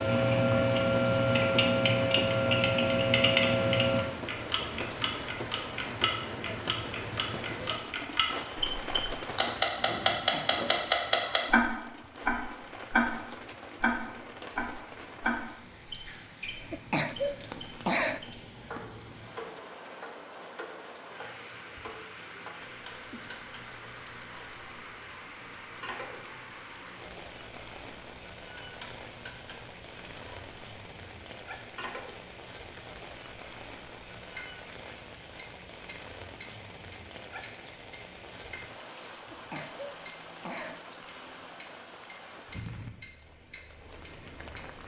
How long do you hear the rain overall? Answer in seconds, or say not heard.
45 s.